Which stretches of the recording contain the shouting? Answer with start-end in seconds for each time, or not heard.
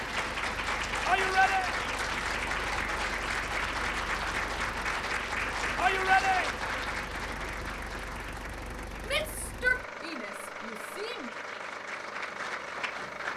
1.1-1.7, 5.8-6.5, 9.0-11.3.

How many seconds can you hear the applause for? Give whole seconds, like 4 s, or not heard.
13 s.